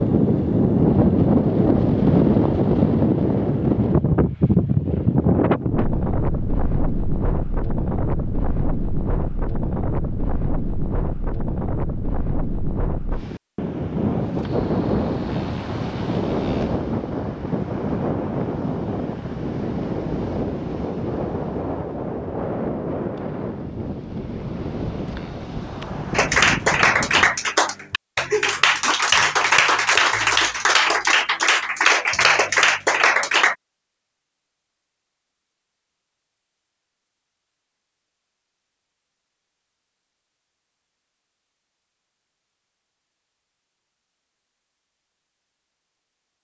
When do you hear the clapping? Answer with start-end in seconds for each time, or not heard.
26.1-33.5.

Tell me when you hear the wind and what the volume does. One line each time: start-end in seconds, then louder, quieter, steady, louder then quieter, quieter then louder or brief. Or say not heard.
0.0-27.5 quieter.